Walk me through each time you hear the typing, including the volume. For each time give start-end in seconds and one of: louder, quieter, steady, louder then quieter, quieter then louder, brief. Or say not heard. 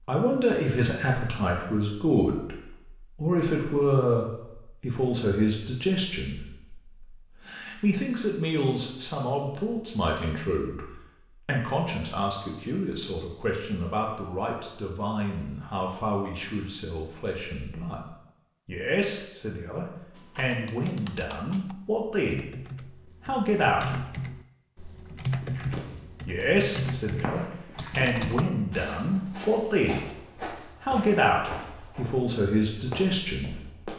20.1-28.4 louder.